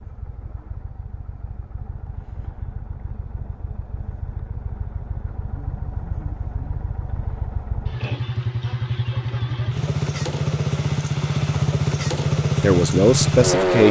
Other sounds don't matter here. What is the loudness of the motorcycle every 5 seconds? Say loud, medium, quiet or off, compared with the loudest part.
quiet, medium, loud.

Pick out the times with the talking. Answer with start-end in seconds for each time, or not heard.
12.6-13.8.